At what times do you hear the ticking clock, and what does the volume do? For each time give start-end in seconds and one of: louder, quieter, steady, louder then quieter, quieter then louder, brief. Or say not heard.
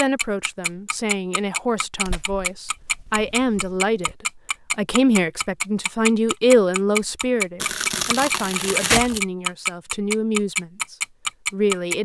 0.0-11.9 louder.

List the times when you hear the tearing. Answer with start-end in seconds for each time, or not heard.
2.0-4.2, 7.6-9.2.